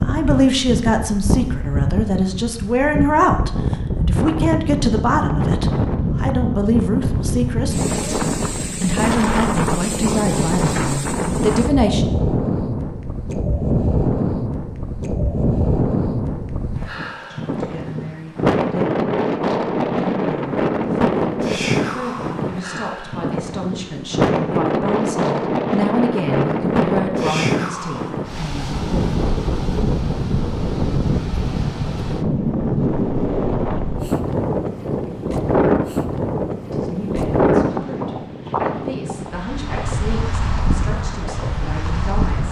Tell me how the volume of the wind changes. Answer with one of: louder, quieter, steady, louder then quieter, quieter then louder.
steady.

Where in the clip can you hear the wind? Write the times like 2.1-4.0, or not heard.
0.0-42.4.